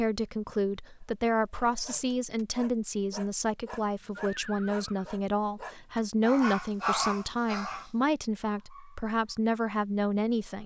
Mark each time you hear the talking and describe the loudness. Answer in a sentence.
You can hear the talking from 0.0 to 10.6 s, at a steady volume.